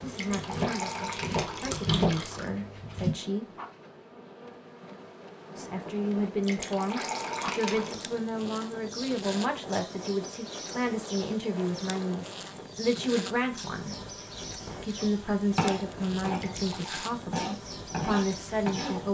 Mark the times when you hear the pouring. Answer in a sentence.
You can hear the pouring from 0.1 to 2.5 s, from 6.4 to 8.1 s and from 16.4 to 17.1 s.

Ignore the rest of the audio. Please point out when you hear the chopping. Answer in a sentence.
The chopping can be heard from 0.0 to 3.1 s and from 14.9 to 19.0 s.